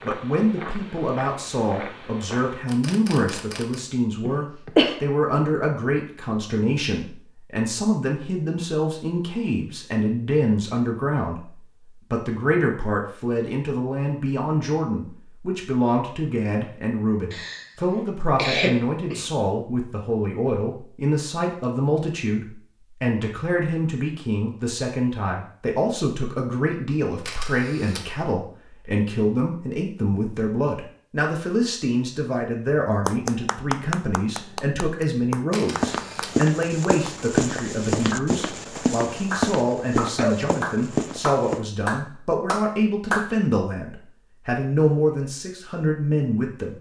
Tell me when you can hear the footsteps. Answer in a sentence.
You can hear the footsteps from 0.0 to 2.6 s and from 35.8 to 41.6 s.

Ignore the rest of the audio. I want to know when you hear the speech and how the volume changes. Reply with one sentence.
The speech can be heard from 0.0 to 46.7 s, at a steady volume.